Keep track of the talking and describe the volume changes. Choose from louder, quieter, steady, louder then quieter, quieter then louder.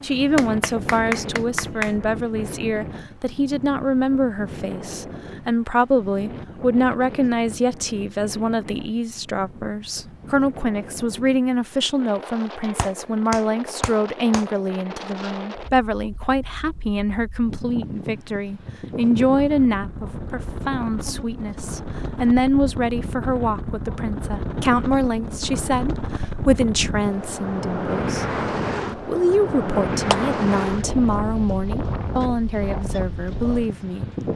steady.